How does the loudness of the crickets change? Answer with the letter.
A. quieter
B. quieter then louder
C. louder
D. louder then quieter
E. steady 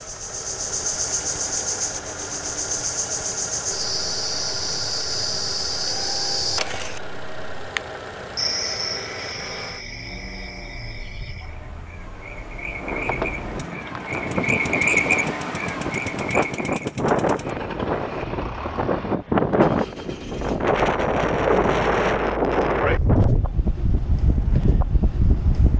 B.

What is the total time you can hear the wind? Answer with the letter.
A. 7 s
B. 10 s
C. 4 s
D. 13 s
D.